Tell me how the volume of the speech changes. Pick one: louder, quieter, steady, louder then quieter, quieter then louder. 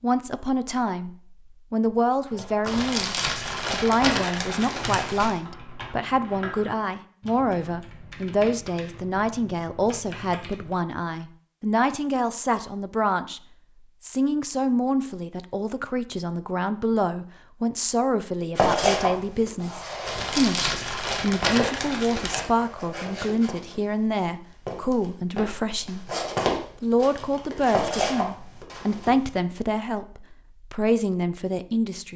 steady.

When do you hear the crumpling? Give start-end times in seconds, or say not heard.
2.6-5.4, 20.1-22.4.